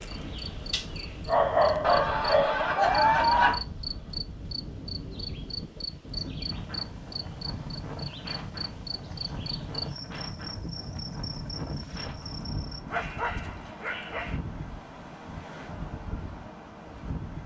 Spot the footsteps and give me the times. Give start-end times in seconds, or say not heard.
not heard.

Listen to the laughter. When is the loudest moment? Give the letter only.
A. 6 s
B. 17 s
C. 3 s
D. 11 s
C.